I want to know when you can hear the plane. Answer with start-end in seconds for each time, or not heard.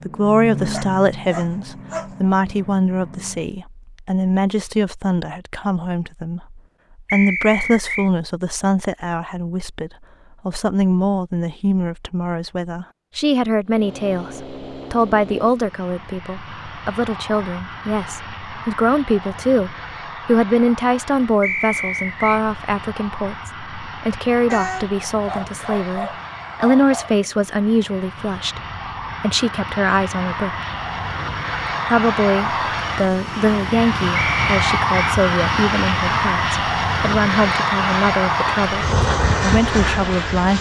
0.0-3.5, 13.7-40.5.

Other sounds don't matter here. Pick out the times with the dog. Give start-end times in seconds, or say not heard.
0.7-2.1, 24.4-27.1.